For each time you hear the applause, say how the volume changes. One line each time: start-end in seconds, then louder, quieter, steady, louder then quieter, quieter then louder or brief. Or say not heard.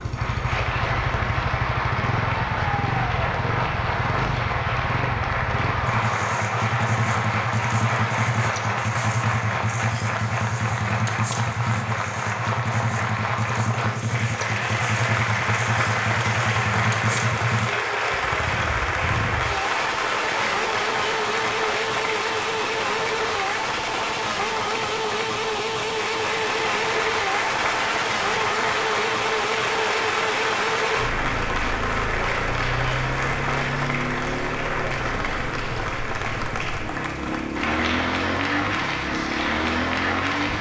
0.0-40.5 steady.